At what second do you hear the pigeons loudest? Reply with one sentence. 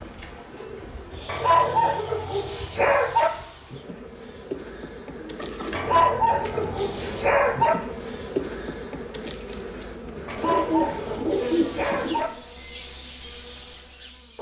The volume of the pigeons peaks at 11 seconds.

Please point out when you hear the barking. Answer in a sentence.
You can hear the barking from 1.2 to 3.3 s, from 5.7 to 7.8 s and from 10.2 to 12.3 s.